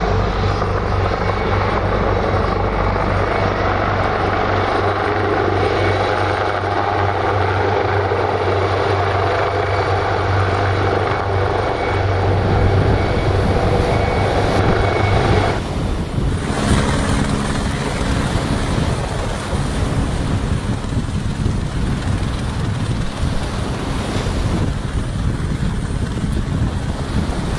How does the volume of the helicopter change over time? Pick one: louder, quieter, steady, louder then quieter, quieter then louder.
quieter.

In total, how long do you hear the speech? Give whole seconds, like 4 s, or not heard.
not heard.